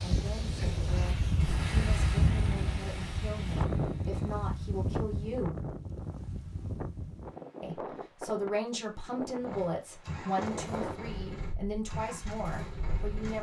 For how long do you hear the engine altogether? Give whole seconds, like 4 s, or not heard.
4 s.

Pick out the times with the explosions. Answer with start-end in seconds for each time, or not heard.
1.4-4.5.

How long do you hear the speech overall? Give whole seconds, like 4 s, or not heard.
11 s.